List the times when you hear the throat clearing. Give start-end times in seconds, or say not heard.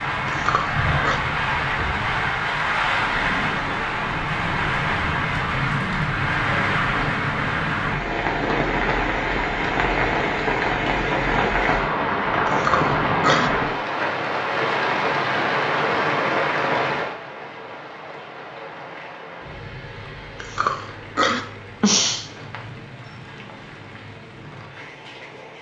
0.2-1.2, 12.4-13.5, 20.4-22.2.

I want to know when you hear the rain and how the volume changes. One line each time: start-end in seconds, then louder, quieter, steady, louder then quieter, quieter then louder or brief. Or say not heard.
0.0-25.5 quieter.